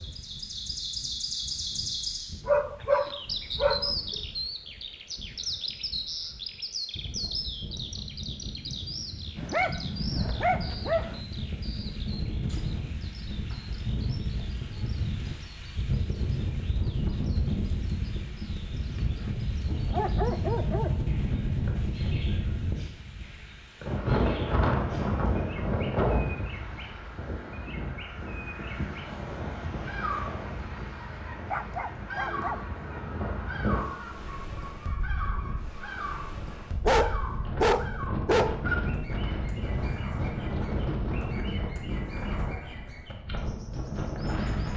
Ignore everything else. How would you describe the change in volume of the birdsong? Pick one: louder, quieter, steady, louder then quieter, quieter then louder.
quieter then louder.